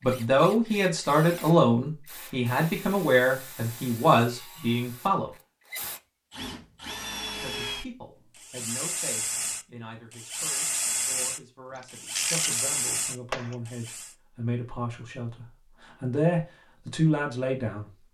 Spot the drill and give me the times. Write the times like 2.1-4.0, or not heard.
0.0-14.2.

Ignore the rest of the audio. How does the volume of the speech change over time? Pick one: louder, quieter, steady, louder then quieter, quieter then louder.
quieter then louder.